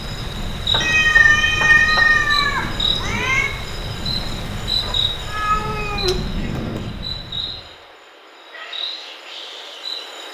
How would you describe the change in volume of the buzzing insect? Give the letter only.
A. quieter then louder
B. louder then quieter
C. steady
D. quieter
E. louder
D.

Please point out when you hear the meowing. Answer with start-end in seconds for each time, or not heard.
0.8-3.5, 5.2-6.8.